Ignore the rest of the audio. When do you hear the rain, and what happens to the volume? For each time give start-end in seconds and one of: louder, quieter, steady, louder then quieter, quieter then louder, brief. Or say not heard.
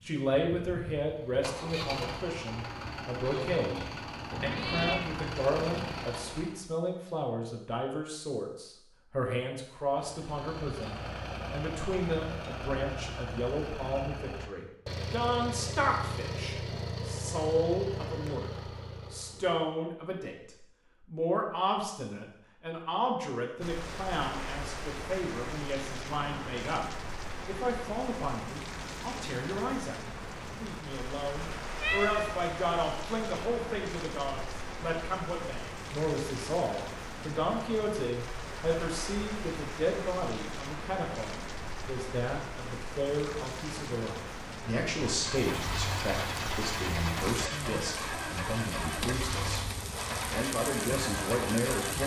23.6-52.0 steady.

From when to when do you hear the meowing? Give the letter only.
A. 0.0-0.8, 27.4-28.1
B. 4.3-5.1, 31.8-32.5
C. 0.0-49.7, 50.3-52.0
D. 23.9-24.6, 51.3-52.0
B.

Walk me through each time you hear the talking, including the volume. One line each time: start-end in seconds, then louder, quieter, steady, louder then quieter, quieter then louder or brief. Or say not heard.
0.0-49.7 steady
50.3-52.0 brief.